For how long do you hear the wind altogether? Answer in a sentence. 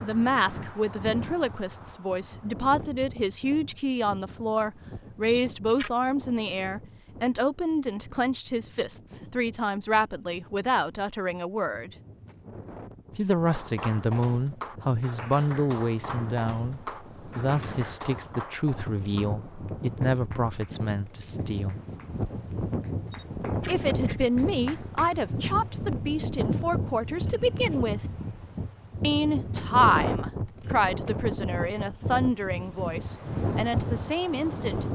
You can hear the wind for 35 seconds altogether.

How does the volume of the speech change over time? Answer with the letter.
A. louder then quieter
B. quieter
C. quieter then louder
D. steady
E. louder
D.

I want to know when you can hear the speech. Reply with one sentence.
The speech can be heard from 0.0 to 11.9 s, from 13.2 to 21.8 s, from 23.6 to 28.0 s and from 29.0 to 34.9 s.